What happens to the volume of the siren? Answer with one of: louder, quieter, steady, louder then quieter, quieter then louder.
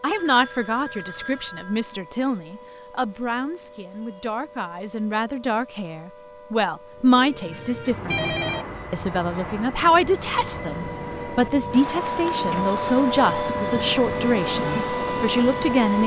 louder.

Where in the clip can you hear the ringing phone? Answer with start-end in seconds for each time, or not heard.
0.1-1.9, 8.1-8.7, 12.1-12.8.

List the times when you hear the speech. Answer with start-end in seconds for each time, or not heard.
0.0-8.3, 8.9-16.0.